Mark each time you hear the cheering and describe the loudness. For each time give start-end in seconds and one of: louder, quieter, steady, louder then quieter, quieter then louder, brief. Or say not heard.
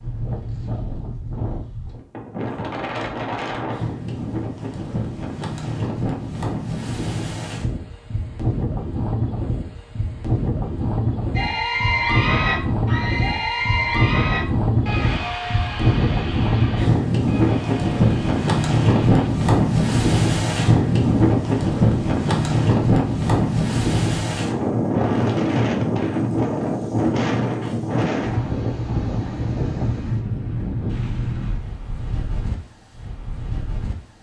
11.3-19.4 quieter.